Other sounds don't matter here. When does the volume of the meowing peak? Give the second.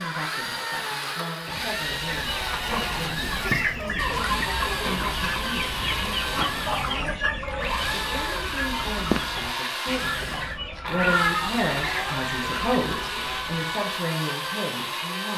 11 s.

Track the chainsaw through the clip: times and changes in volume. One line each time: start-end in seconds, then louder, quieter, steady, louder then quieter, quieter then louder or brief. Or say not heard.
0.0-15.3 steady.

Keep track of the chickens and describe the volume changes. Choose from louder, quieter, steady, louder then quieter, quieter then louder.
quieter.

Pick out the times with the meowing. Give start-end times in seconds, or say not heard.
3.3-4.6, 10.9-12.2.